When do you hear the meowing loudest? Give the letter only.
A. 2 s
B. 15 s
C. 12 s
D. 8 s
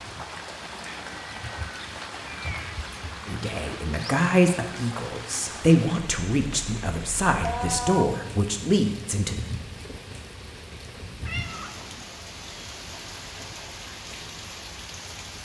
D.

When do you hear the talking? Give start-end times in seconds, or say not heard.
3.2-9.4.